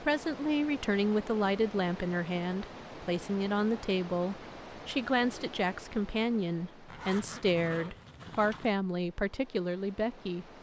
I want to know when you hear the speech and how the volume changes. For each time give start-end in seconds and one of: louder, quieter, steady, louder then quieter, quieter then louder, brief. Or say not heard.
0.0-10.4 steady.